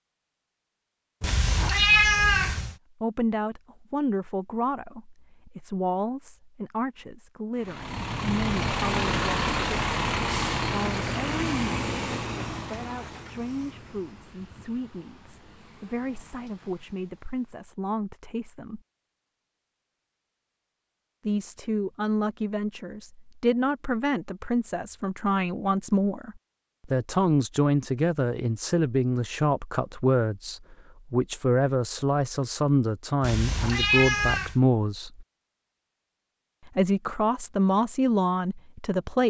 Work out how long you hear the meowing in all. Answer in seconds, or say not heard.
3 s.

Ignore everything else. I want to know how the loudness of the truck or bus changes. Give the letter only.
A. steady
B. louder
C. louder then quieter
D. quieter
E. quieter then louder
D.